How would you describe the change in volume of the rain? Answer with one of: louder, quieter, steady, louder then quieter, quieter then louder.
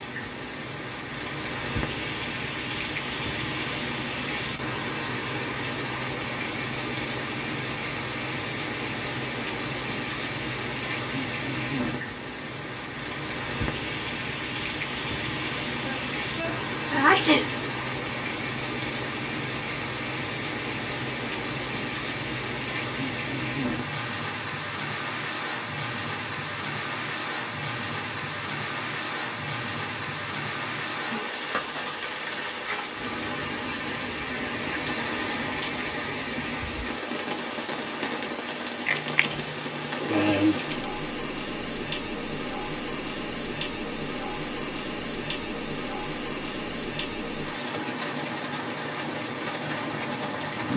steady.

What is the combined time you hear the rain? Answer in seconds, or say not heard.
51 s.